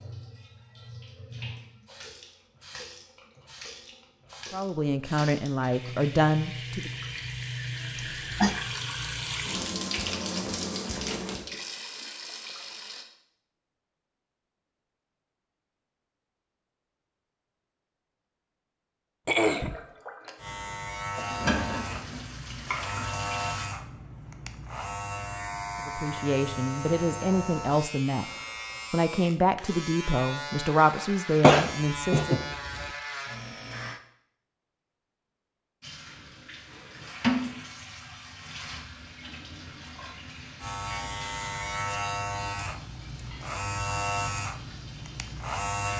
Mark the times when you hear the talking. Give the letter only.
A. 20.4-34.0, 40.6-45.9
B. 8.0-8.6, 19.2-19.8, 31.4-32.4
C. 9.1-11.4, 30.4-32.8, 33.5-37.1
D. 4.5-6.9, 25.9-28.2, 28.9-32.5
D.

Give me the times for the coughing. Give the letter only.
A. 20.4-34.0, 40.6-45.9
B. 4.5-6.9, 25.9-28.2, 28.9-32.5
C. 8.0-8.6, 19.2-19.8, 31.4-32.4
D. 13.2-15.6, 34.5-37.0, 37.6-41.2
C.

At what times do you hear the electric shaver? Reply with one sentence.
The electric shaver can be heard from 20.4 to 34.0 s and from 40.6 to 45.9 s.